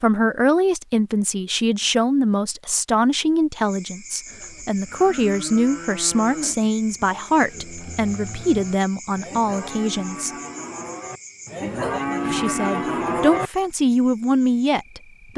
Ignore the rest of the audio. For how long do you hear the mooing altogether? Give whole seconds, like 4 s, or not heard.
9 s.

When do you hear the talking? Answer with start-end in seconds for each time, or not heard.
0.0-10.3, 12.2-15.3.